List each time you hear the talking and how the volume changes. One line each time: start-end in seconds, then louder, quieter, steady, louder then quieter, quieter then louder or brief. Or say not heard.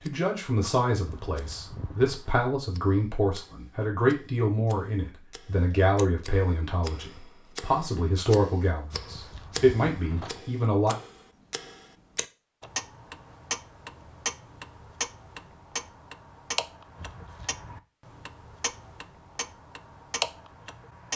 0.1-10.9 steady.